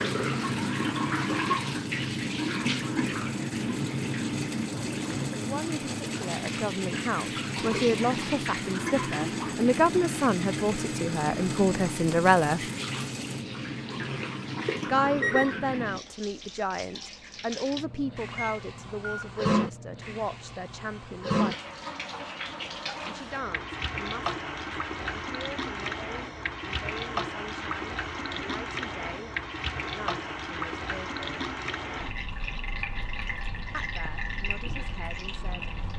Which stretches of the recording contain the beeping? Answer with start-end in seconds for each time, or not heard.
14.8-15.6, 18.2-19.3.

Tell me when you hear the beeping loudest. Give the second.
15 s.